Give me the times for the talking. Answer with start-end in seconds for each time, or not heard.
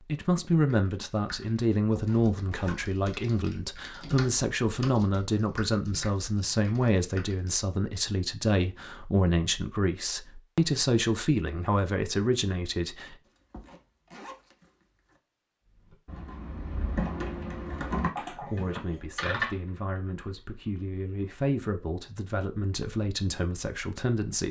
0.1-13.2, 18.1-24.4.